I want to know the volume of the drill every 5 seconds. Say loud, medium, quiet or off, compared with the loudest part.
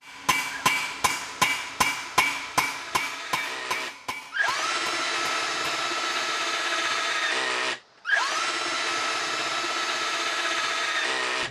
medium, loud, loud.